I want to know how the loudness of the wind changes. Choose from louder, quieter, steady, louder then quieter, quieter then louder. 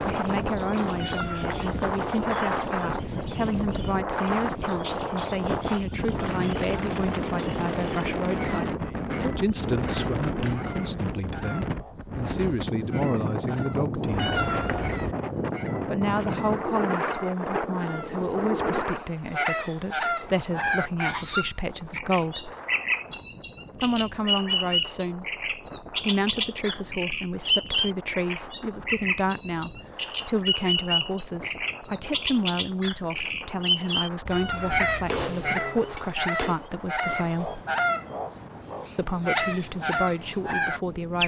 quieter.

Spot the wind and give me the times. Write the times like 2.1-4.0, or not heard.
0.0-41.2.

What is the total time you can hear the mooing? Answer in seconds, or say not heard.
not heard.